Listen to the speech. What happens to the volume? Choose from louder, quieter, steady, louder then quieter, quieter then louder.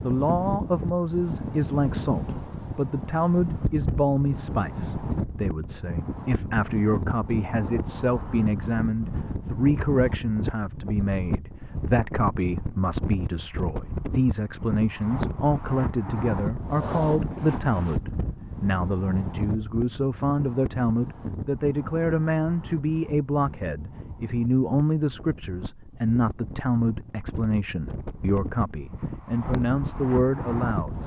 steady.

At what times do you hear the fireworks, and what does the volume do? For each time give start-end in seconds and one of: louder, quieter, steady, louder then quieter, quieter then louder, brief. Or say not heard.
not heard.